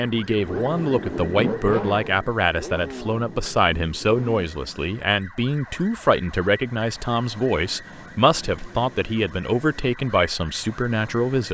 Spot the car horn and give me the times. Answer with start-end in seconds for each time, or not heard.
not heard.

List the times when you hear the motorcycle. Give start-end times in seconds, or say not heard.
0.2-4.5.